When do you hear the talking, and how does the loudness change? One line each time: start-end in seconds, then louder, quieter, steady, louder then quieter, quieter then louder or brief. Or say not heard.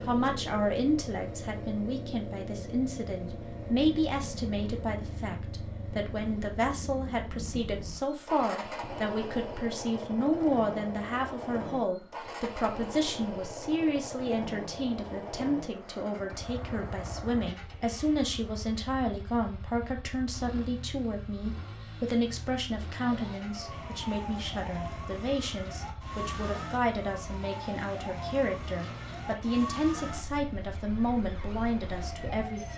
0.0-32.7 steady.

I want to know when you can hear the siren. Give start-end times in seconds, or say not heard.
23.1-32.7.